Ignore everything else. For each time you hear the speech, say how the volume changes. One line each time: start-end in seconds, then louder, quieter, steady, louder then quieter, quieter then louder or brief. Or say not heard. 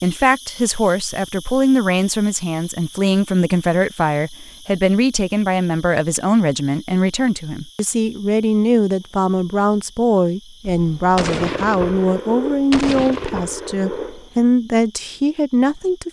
0.0-16.0 steady.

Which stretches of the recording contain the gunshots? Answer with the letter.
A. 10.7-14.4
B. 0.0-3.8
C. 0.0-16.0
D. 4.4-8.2
A.